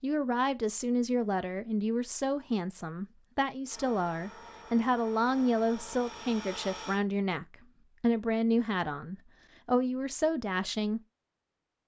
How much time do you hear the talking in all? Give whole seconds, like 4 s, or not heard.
11 s.